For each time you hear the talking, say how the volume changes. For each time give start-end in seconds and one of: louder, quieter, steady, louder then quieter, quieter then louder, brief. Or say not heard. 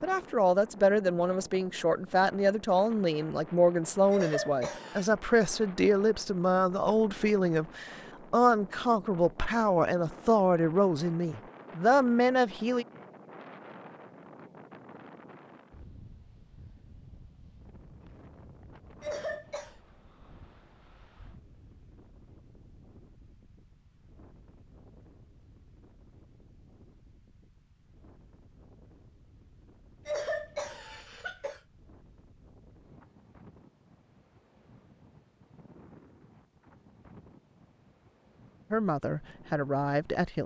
0.0-12.8 steady
38.7-40.4 brief.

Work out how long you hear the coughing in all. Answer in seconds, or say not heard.
3 s.